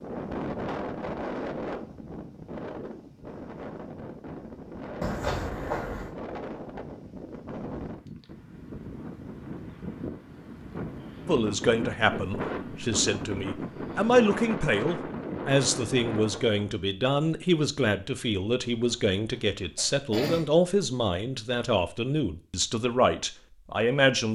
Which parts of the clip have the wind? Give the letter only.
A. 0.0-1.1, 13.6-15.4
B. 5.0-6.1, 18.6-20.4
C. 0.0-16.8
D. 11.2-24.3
C.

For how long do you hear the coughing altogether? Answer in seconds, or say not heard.
3 s.